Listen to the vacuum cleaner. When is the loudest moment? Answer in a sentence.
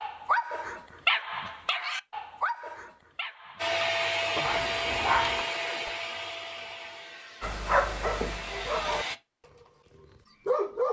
The volume of the vacuum cleaner peaks at 4 seconds.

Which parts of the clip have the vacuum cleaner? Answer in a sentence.
You can hear the vacuum cleaner from 3.5 to 9.2 s.